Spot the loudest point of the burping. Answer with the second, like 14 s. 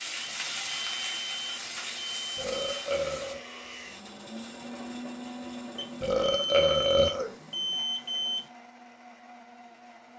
7 s.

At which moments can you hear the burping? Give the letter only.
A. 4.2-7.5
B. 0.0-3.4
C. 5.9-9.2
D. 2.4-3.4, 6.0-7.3
D.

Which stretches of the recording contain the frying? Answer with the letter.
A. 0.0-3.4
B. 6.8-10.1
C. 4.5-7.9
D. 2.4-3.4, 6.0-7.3
A.